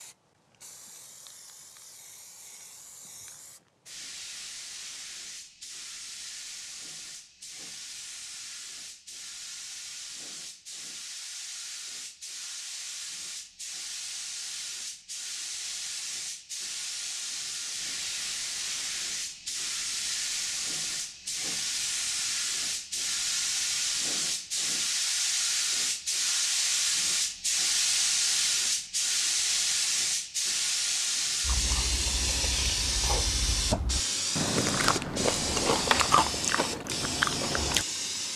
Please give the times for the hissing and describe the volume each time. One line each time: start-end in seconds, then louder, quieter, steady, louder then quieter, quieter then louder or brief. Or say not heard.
0.0-38.3 louder.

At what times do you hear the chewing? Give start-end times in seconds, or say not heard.
31.4-37.9.